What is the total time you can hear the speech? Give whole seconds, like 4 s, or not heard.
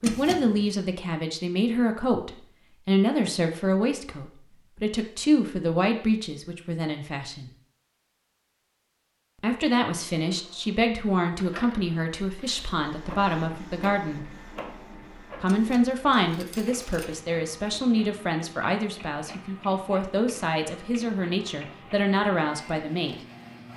20 s.